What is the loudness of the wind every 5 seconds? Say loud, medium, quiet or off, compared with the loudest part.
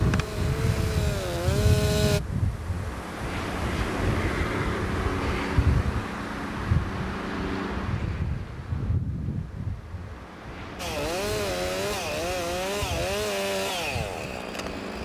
loud, loud, medium.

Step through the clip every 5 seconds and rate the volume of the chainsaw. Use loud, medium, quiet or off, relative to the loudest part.
loud, off, loud.